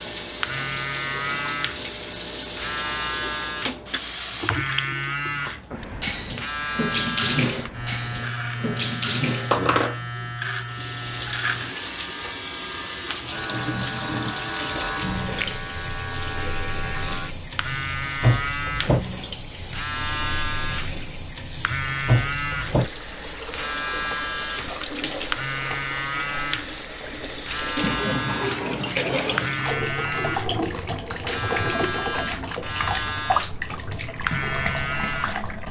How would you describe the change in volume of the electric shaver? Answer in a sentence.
The loudness of the electric shaver stays about the same.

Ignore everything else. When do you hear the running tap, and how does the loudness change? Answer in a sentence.
You can hear the running tap from 0.0 to 35.6 s, at a steady volume.